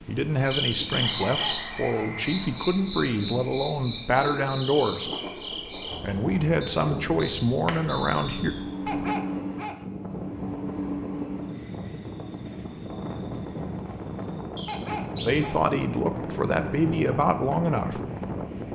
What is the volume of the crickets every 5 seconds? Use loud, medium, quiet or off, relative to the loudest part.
loud, loud, medium, off.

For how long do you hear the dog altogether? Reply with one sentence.
The dog can be heard for 3 seconds in total.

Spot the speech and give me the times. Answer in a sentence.
You can hear the speech from 0.1 to 5.1 s, from 6.0 to 8.6 s and from 15.2 to 18.0 s.